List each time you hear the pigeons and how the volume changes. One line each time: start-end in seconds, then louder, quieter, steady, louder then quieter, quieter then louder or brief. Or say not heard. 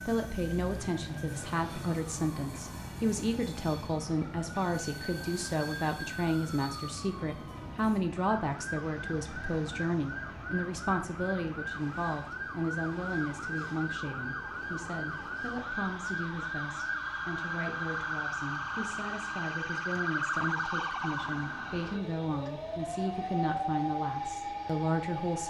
not heard.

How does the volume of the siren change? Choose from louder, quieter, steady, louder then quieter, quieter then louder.
louder.